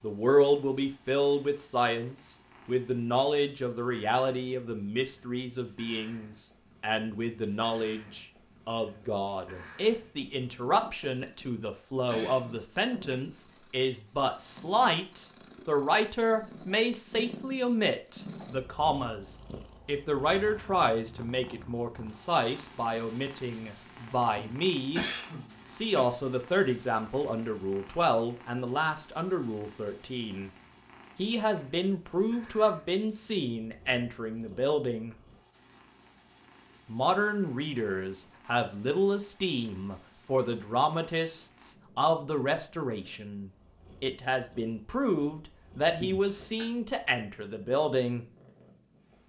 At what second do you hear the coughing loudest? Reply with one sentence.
The volume of the coughing peaks at 25 seconds.